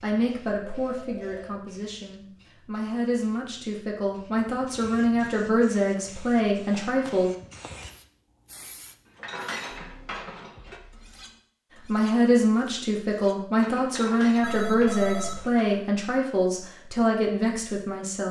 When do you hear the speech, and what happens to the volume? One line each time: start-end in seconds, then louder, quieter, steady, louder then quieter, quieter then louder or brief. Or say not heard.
0.0-7.3 louder
11.8-18.2 steady.